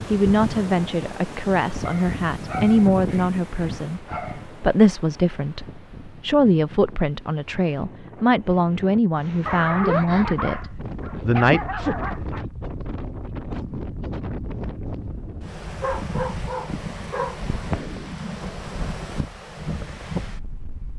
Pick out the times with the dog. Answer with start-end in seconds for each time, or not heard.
1.9-4.5, 9.4-12.4, 15.8-17.4.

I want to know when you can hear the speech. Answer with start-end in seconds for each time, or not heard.
0.1-11.6.